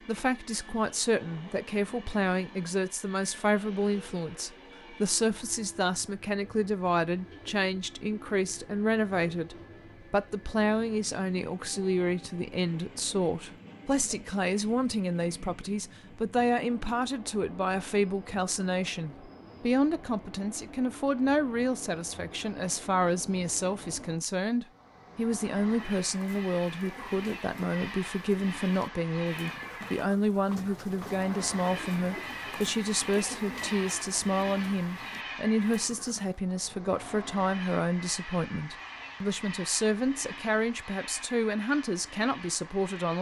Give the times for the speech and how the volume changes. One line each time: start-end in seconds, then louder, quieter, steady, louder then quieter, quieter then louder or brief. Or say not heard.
0.1-43.1 steady.